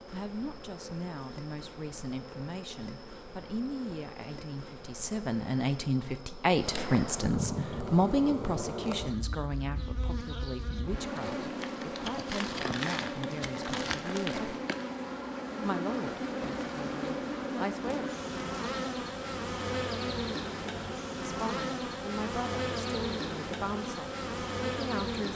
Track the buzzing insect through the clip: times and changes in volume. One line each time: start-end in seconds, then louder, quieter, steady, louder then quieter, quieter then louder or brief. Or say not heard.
0.0-25.3 louder.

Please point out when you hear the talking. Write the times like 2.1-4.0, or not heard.
0.1-14.6, 15.6-18.1, 21.2-25.3.